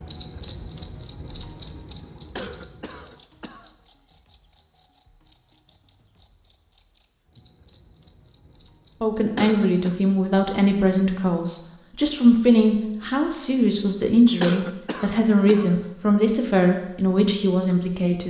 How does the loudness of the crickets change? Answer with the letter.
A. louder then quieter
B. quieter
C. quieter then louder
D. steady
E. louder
C.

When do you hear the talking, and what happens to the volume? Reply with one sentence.
The talking can be heard from 9.0 to 18.2 s, at a steady volume.